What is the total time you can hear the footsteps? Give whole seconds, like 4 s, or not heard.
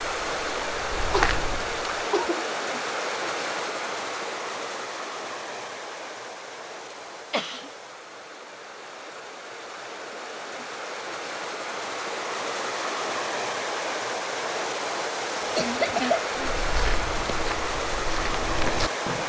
5 s.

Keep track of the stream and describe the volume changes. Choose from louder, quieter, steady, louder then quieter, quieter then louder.
quieter then louder.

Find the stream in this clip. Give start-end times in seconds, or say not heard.
0.0-19.2.